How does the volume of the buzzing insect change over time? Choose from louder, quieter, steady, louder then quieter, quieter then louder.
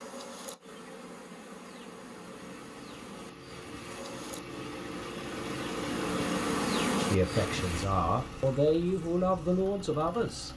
louder then quieter.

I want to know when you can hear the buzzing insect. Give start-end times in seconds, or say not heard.
0.0-10.5.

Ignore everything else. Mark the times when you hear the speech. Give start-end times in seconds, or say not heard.
7.0-10.5.